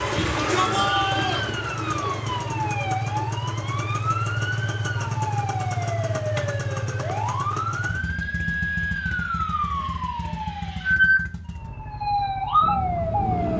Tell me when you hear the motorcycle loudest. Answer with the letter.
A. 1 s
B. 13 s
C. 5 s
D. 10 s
C.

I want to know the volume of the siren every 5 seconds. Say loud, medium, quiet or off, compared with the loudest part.
medium, medium, loud.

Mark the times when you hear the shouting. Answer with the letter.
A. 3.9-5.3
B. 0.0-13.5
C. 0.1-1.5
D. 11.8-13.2
C.